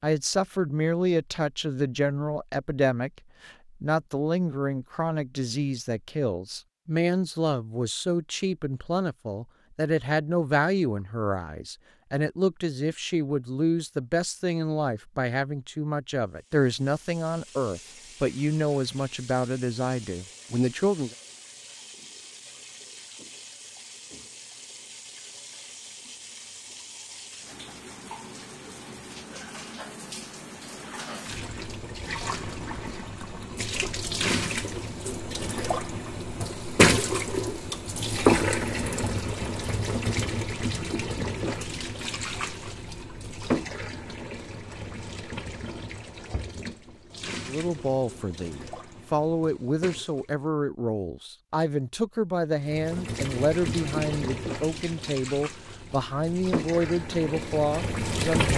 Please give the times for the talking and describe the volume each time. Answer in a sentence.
The talking can be heard from 0.0 to 21.1 s, at a steady volume; and from 47.5 to 58.5 s, at a steady volume.